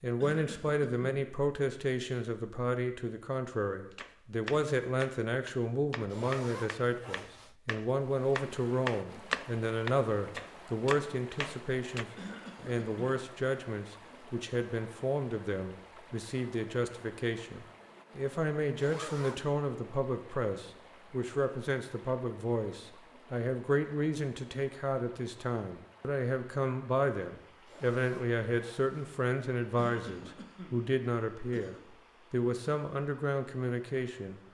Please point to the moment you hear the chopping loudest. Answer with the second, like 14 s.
9 s.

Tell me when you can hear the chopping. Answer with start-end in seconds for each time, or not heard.
3.9-12.1.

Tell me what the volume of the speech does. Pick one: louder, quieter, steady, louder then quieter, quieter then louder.
steady.